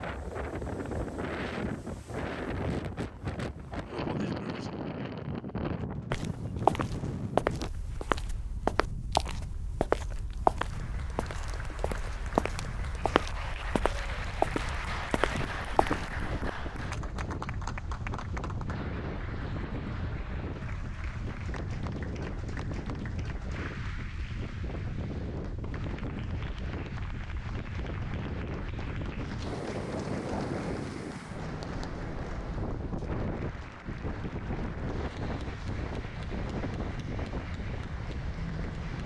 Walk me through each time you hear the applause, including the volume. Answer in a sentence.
You can hear the applause from 10.7 to 39.0 s, getting quieter.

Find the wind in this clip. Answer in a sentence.
The wind can be heard from 0.0 to 39.0 s.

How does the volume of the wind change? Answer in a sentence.
The volume of the wind goes down, then up.